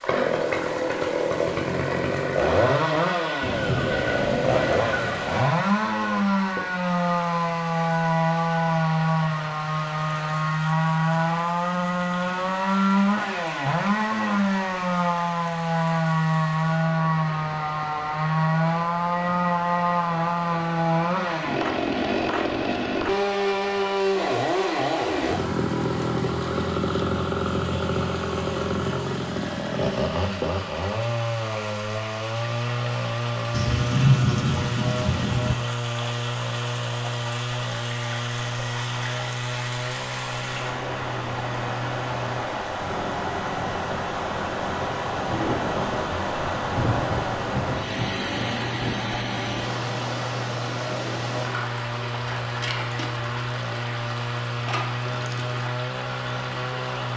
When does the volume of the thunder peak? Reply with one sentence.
The volume of the thunder peaks at 34 seconds.